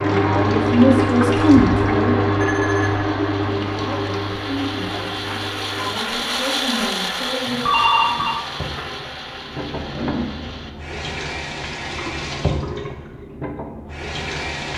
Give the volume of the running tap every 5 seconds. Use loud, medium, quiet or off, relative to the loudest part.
loud, quiet, medium.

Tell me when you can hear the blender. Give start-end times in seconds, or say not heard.
0.1-10.8.